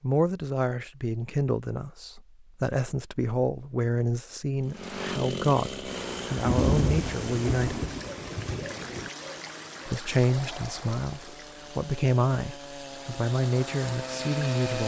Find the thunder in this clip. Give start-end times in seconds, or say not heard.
6.3-9.1.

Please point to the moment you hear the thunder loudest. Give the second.
7 s.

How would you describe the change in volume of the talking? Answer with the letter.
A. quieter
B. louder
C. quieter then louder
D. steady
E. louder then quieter
D.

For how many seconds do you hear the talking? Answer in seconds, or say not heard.
13 s.